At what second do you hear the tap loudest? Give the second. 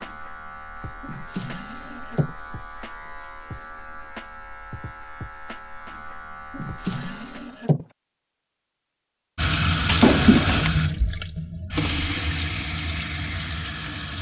10 s.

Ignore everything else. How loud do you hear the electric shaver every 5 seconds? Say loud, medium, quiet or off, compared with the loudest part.
loud, loud, off.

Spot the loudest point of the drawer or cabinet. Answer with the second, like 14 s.
10 s.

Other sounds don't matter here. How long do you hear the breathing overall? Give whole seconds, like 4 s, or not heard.
not heard.